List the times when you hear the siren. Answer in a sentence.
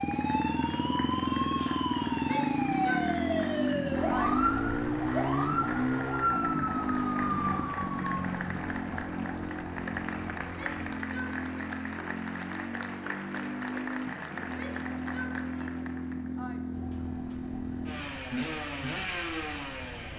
The siren can be heard from 0.0 to 10.8 s and from 16.7 to 20.1 s.